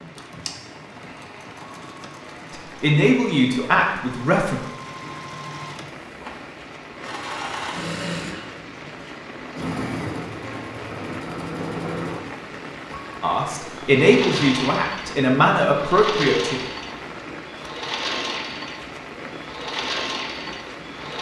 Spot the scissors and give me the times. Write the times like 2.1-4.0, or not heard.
not heard.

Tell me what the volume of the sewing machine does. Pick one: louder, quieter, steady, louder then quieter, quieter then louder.
louder.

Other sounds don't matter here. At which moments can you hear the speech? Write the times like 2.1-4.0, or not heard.
2.5-4.6, 13.2-16.6.